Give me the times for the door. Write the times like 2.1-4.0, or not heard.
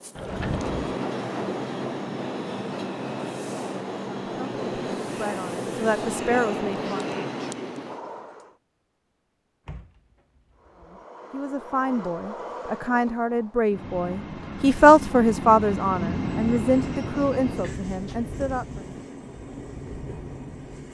0.1-0.8, 9.7-11.0, 17.6-18.2.